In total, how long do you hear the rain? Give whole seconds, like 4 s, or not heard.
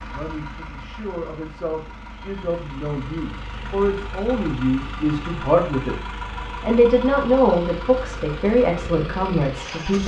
not heard.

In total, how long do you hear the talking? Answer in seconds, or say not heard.
9 s.